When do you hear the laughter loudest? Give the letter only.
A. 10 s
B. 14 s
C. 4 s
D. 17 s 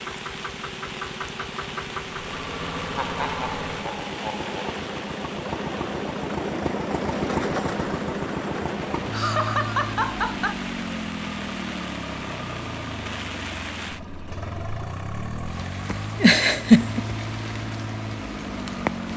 D.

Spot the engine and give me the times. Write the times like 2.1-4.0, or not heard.
0.0-19.1.